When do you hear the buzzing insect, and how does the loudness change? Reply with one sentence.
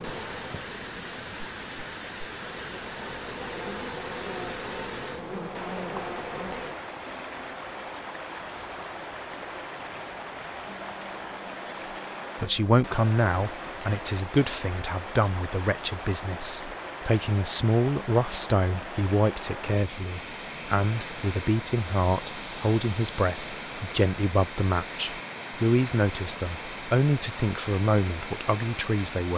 The buzzing insect can be heard from 0.0 to 6.8 s, getting louder.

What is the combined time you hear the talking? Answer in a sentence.
You can hear the talking for 17 seconds altogether.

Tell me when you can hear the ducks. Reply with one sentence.
The ducks can't be heard in this clip.